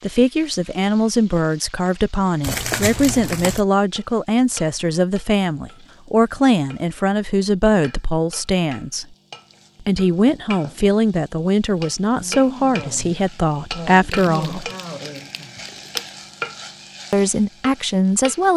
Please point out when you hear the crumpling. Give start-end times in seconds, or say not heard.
2.4-3.6, 14.1-16.1.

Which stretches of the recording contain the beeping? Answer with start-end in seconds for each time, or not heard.
not heard.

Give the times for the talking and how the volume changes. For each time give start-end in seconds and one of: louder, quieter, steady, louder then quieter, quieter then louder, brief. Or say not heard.
0.0-9.1 steady
9.8-14.7 steady
17.1-18.5 brief.